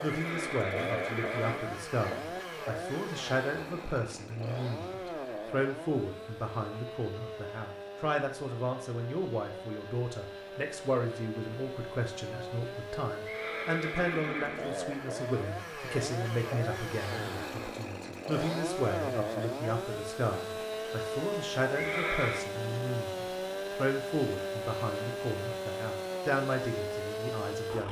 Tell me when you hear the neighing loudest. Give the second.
22 s.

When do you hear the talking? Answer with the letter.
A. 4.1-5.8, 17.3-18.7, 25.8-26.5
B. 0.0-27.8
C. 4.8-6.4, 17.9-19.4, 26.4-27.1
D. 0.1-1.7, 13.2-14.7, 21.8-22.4
B.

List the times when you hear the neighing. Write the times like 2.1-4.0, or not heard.
0.1-1.7, 13.2-14.7, 21.8-22.4.